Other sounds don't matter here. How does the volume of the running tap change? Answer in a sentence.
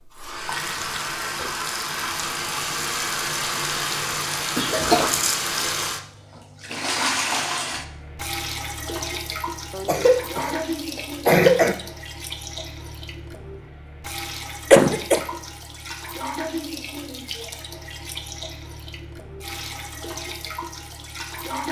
The volume of the running tap goes down.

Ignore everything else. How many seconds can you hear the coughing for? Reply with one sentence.
You can hear the coughing for 3 seconds altogether.